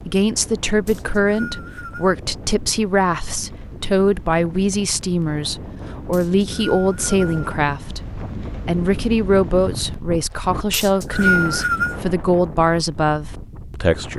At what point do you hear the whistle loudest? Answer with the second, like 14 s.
11 s.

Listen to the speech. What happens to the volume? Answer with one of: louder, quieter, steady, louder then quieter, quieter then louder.
steady.